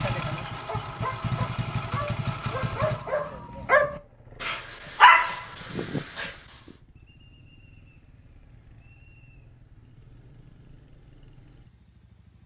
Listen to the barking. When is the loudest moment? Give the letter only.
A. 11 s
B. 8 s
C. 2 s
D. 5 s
D.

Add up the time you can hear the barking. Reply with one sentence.
You can hear the barking for 6 seconds altogether.